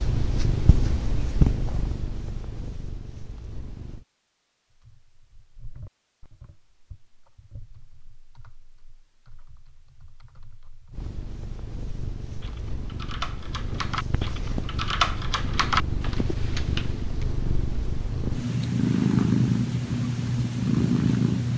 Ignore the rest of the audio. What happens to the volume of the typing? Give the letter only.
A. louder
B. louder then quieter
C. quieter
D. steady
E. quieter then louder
A.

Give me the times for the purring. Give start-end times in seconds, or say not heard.
0.0-4.0, 10.9-21.5.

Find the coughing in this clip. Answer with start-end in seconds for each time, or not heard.
not heard.